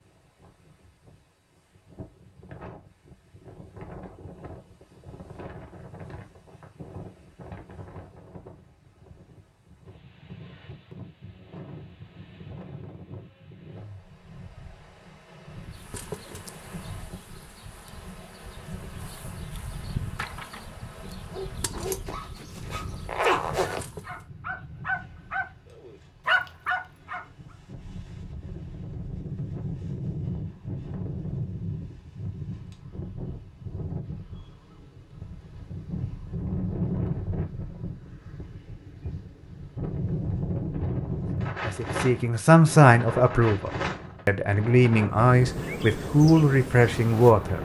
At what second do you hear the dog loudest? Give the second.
26 s.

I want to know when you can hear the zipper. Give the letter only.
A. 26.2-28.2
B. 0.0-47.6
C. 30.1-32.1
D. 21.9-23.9
D.